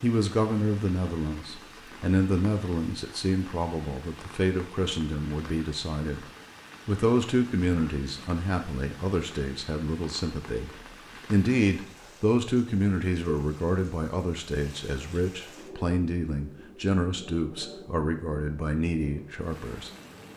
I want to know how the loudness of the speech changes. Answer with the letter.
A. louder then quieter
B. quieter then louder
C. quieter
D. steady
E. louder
D.